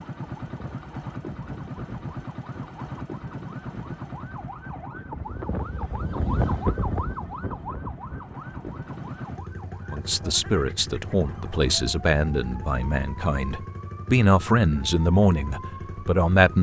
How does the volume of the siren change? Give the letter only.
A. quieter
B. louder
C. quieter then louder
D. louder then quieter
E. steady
D.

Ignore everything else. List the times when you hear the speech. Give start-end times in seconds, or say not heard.
9.9-16.5.